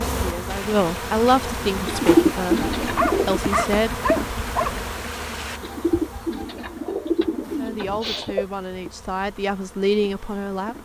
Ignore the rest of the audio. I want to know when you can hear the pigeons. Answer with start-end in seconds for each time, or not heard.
1.9-3.4, 5.6-8.4.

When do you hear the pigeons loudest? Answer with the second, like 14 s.
2 s.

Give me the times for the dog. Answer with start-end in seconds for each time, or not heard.
2.5-4.8.